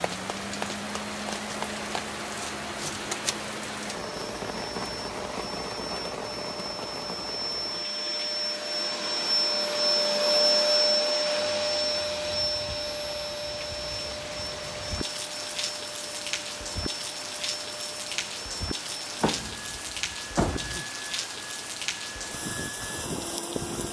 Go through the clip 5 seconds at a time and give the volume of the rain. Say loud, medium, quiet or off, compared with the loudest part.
loud, loud, medium, loud, loud.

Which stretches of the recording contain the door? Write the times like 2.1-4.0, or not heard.
19.2-20.8.